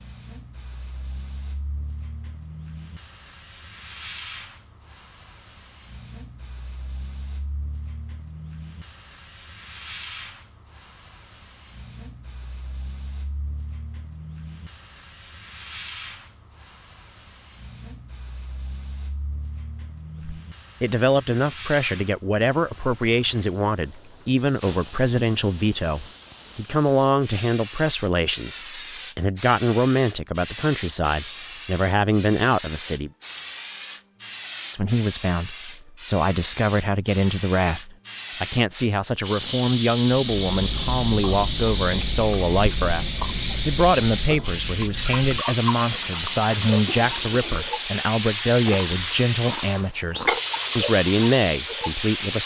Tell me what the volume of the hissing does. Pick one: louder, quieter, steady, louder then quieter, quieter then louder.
louder.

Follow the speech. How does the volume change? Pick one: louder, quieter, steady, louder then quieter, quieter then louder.
steady.